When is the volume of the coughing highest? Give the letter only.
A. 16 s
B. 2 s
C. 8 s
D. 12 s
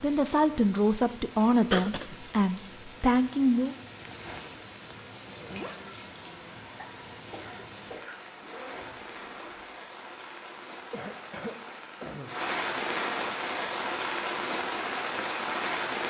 B.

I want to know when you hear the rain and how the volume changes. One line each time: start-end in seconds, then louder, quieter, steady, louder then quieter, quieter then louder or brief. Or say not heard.
0.0-16.0 louder.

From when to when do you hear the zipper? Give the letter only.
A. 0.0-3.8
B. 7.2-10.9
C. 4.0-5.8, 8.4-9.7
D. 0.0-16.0
C.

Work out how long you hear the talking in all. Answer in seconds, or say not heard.
4 s.